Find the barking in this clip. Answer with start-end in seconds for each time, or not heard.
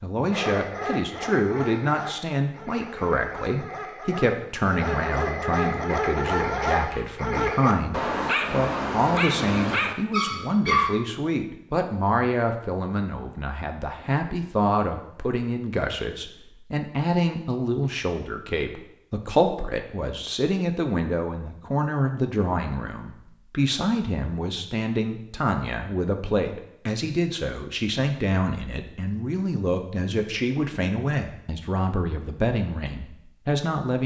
0.3-10.9.